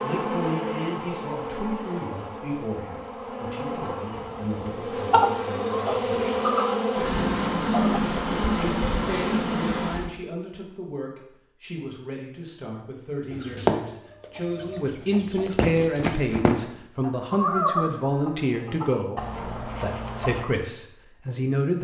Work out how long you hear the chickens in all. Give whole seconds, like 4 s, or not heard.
10 s.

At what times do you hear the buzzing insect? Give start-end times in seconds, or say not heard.
0.0-10.1.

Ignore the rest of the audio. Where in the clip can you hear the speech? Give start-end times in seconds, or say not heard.
0.0-6.5, 8.6-19.2, 19.8-21.7.